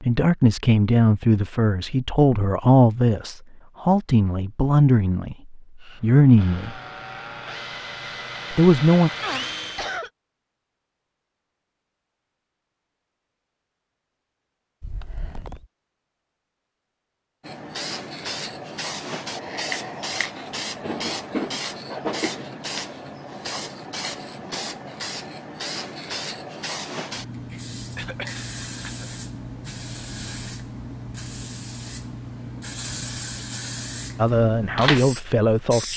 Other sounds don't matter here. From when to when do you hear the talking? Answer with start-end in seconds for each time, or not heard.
0.0-6.8, 8.5-9.1, 34.1-35.9.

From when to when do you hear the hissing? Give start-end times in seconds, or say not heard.
17.4-35.9.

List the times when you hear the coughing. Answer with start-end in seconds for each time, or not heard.
9.2-10.1, 14.8-15.7, 27.9-29.1.